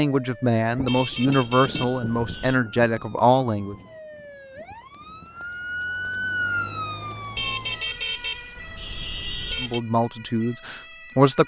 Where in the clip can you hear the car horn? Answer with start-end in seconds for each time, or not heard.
0.8-2.5, 7.3-9.8.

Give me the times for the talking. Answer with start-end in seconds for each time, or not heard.
0.0-3.8, 9.6-11.4.